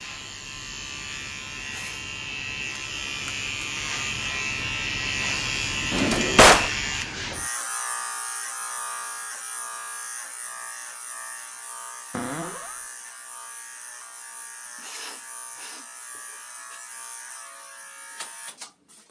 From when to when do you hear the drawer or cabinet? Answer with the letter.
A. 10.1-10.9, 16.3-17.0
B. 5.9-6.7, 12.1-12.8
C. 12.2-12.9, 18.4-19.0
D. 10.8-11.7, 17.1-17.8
B.